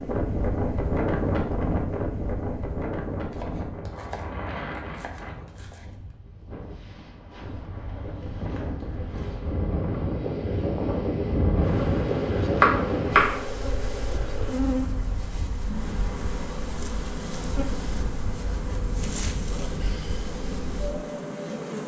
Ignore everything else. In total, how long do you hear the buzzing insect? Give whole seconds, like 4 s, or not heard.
14 s.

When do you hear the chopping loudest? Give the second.
13 s.